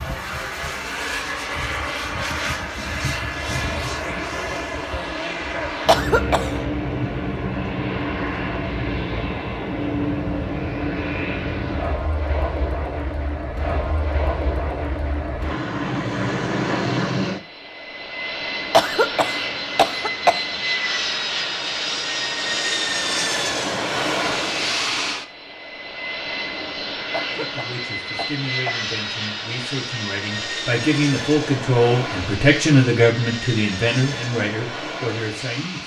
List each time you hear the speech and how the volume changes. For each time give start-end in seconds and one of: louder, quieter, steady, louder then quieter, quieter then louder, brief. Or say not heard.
27.2-35.8 louder then quieter.